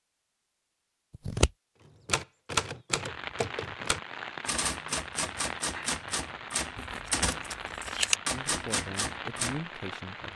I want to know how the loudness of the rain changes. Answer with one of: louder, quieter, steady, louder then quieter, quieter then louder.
steady.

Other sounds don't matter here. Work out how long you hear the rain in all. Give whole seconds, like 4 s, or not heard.
7 s.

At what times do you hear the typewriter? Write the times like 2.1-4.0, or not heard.
1.8-9.6.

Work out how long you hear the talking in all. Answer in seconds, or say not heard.
2 s.